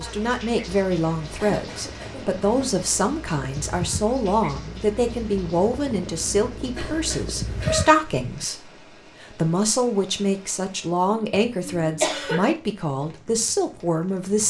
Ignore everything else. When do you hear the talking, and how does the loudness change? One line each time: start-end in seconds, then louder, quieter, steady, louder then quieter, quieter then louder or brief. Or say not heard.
0.0-14.4 steady.